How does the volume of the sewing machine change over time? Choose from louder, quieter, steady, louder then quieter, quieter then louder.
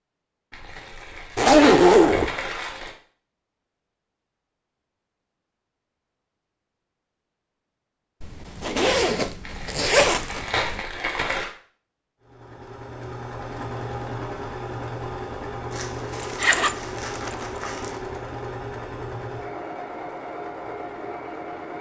steady.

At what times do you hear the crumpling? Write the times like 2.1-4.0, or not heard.
0.5-3.0, 9.4-11.5, 15.7-18.0.